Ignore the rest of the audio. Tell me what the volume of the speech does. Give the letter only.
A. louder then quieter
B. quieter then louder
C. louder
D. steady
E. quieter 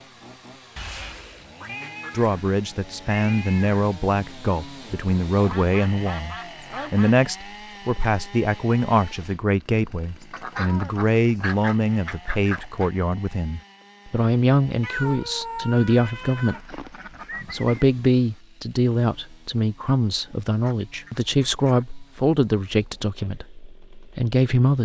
D.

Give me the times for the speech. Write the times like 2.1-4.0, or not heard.
2.1-16.8, 17.5-24.7.